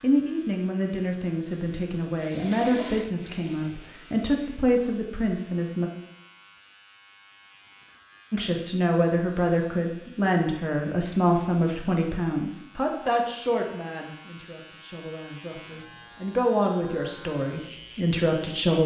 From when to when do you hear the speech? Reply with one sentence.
The speech can be heard from 0.0 to 5.9 s and from 8.3 to 18.8 s.